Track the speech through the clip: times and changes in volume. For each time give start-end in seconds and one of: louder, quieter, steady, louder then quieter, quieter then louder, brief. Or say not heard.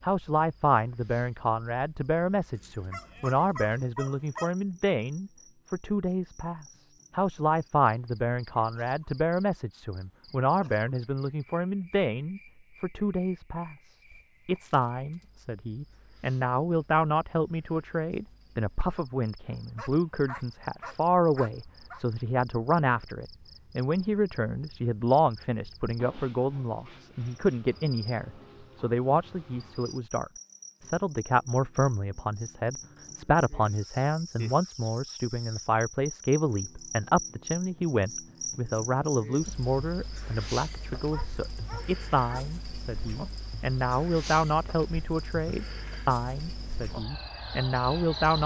0.0-48.4 steady.